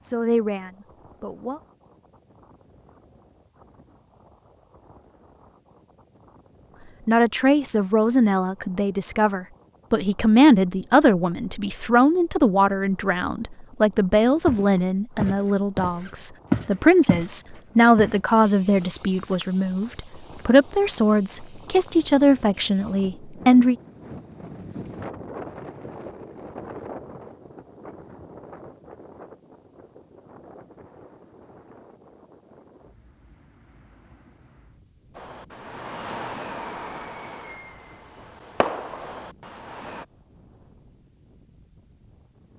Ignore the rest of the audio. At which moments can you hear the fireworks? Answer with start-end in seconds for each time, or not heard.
35.1-40.0.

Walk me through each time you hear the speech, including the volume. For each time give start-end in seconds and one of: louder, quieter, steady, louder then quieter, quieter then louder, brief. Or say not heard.
0.0-1.6 brief
7.0-23.8 steady.